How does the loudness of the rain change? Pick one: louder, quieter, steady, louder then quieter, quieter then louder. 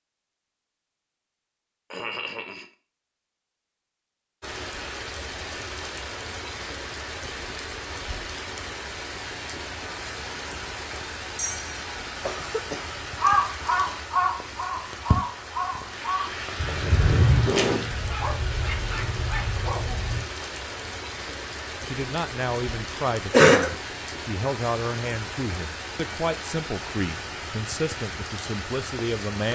steady.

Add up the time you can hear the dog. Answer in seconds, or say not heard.
2 s.